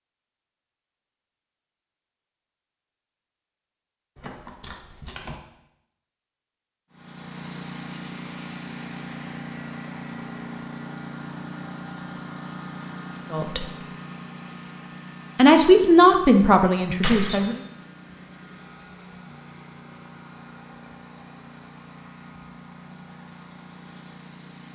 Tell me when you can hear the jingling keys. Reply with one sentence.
You can hear the jingling keys from 4.2 to 5.3 s and from 17.0 to 17.5 s.